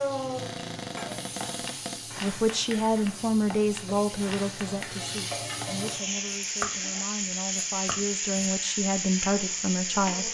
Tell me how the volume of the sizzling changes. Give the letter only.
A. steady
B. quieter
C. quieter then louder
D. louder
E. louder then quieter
D.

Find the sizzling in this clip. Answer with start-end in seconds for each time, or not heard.
0.0-10.2.